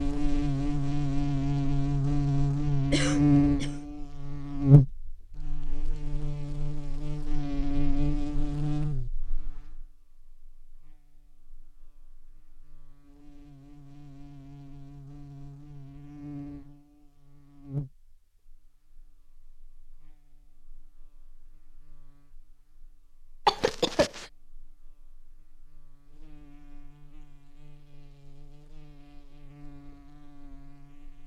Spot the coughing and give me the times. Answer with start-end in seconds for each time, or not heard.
2.9-3.8, 23.4-24.2.